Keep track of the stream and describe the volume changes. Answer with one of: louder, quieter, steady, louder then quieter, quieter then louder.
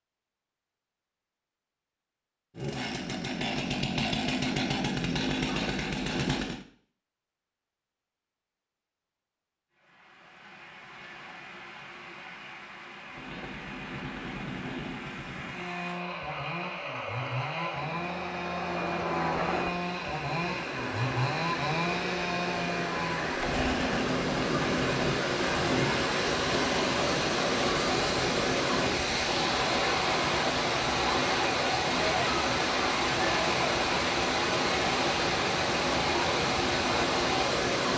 louder.